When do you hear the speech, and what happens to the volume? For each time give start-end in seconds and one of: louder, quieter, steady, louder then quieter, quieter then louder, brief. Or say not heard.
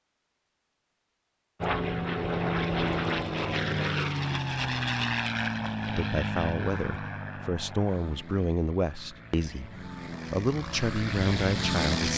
5.8-12.1 steady.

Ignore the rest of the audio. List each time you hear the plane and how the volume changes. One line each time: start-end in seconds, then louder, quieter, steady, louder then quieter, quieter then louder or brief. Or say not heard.
1.6-12.1 quieter then louder.